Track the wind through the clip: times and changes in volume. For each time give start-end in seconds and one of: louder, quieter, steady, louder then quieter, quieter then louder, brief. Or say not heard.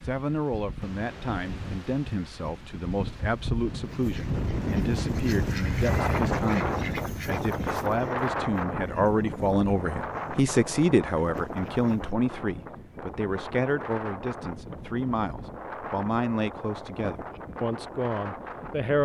0.0-19.0 louder then quieter.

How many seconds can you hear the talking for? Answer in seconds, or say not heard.
19 s.